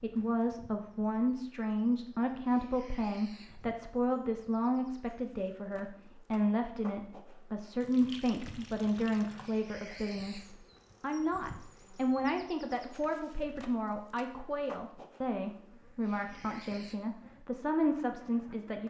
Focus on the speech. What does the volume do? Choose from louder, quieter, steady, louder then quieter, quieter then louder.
steady.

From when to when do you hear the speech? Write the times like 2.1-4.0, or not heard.
0.0-18.8.